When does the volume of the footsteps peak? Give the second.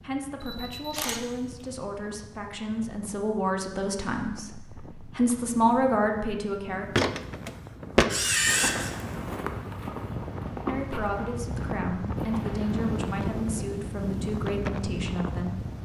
8 s.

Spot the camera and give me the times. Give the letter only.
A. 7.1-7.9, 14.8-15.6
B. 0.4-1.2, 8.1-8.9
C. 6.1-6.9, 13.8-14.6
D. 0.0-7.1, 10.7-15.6
B.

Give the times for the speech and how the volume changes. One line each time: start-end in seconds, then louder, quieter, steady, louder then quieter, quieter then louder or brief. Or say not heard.
0.0-7.1 louder
10.7-15.6 steady.